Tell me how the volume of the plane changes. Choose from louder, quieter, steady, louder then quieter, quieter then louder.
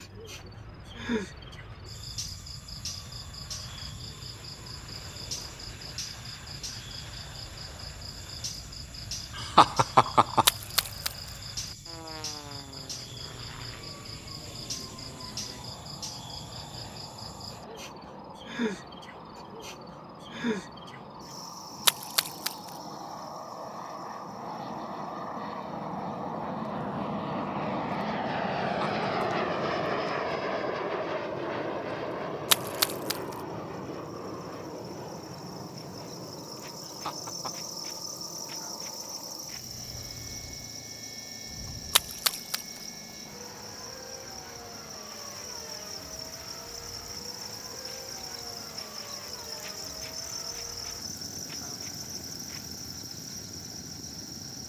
louder then quieter.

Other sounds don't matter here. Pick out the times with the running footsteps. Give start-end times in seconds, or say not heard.
not heard.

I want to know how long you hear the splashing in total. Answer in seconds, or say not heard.
3 s.